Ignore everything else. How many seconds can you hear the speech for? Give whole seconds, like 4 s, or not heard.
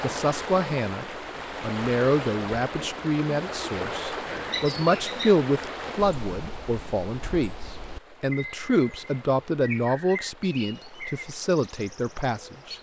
12 s.